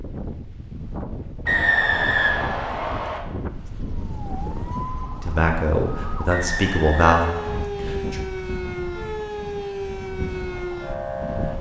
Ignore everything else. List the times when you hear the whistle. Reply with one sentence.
You can hear the whistle from 1.4 to 3.2 s and from 6.3 to 7.7 s.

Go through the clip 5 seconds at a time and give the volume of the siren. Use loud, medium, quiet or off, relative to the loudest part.
medium, loud, loud.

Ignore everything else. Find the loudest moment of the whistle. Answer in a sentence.
The loudest moment of the whistle is at 2 seconds.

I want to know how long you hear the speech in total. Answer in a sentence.
You can hear the speech for 3 seconds altogether.